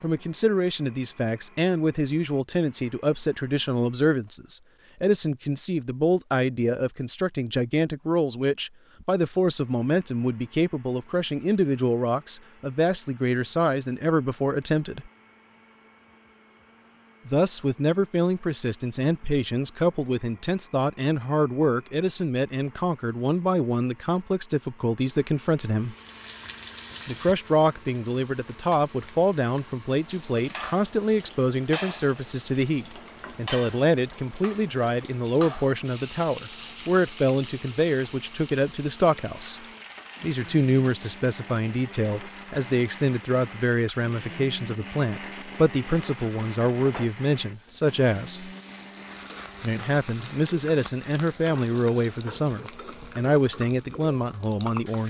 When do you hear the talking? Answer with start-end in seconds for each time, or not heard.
0.0-15.1, 17.2-25.9, 27.1-39.5, 40.2-48.5, 49.6-55.0.